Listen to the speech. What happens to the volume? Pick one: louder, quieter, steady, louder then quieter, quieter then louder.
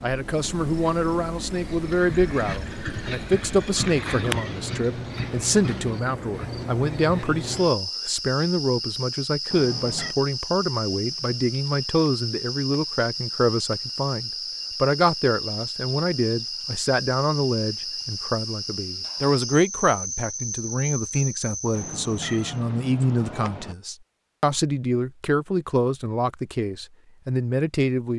steady.